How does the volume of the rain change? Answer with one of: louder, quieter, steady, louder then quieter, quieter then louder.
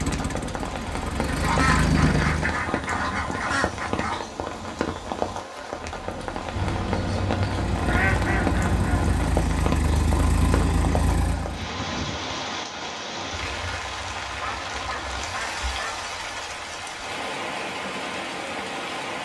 steady.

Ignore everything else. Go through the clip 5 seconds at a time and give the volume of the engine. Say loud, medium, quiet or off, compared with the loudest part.
loud, loud, loud, off.